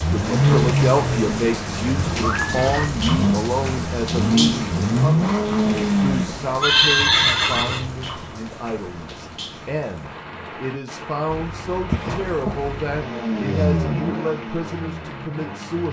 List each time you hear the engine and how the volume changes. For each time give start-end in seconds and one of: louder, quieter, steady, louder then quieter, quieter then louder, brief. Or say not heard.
0.0-6.3 quieter then louder
11.2-15.8 louder then quieter.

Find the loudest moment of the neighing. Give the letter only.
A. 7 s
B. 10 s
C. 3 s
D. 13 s
A.